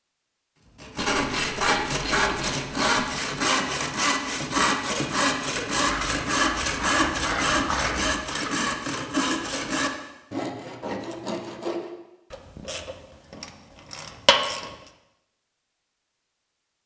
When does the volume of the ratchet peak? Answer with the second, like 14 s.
14 s.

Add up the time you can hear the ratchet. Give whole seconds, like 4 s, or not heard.
7 s.